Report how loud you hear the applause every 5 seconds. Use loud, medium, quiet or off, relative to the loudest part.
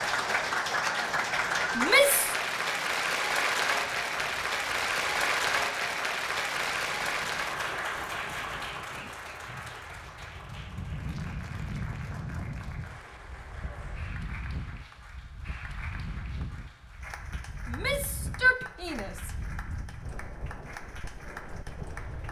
loud, loud, quiet, quiet, quiet.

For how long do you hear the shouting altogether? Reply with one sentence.
You can hear the shouting for 2 seconds altogether.